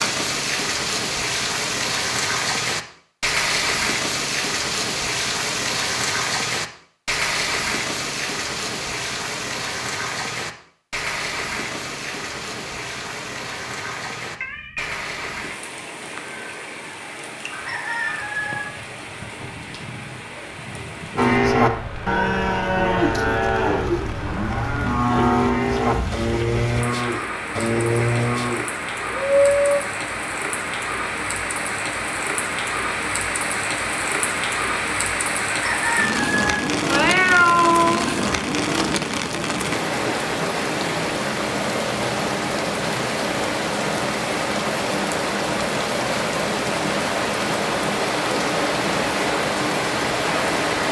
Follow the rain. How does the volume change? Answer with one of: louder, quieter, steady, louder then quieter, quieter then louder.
quieter then louder.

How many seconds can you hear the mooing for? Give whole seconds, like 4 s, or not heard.
9 s.